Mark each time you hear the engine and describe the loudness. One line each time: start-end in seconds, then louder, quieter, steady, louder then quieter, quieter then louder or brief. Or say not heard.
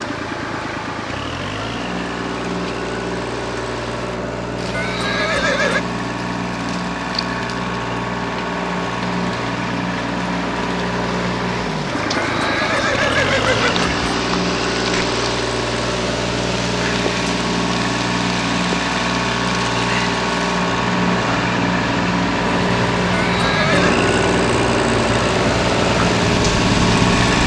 0.0-27.4 louder.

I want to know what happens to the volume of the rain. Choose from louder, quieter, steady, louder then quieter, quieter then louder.
louder.